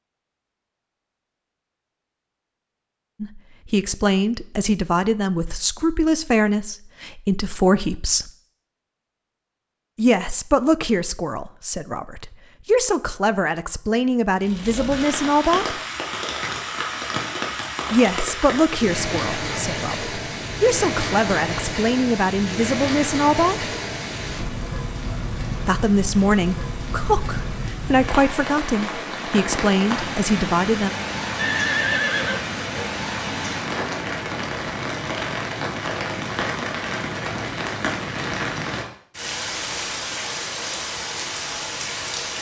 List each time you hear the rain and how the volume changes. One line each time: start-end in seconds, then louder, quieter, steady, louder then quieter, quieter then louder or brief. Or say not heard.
14.4-42.3 steady.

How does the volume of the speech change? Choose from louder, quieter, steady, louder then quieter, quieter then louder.
steady.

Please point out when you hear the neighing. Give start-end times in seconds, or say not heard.
31.4-32.9.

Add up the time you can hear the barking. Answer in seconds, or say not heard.
not heard.